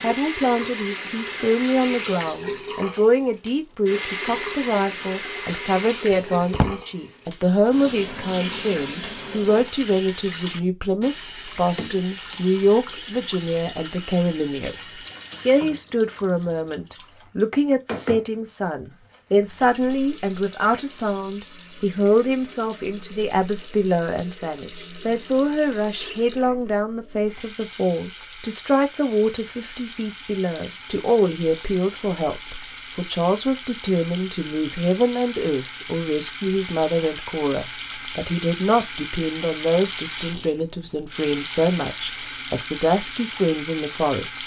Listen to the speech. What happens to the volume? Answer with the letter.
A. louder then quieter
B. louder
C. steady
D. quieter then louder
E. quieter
C.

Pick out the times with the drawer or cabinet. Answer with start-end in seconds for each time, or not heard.
6.1-6.8.